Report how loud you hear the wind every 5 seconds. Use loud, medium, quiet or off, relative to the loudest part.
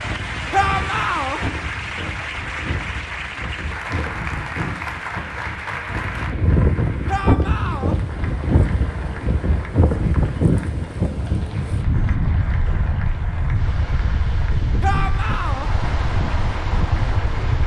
medium, loud, loud, loud.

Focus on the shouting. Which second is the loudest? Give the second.
1 s.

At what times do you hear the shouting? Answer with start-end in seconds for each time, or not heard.
0.5-1.4, 7.0-8.0, 14.8-15.7.